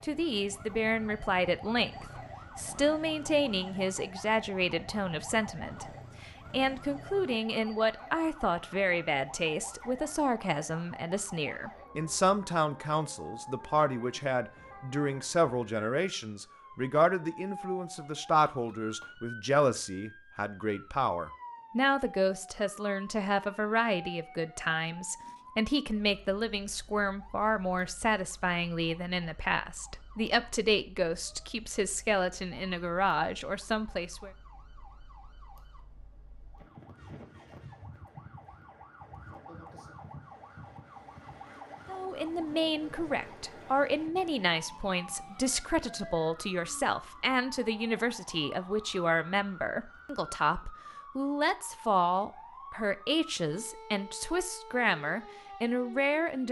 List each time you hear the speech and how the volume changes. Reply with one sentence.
You can hear the speech from 0.0 to 34.3 s, at a steady volume; and from 41.9 to 56.4 s, at a steady volume.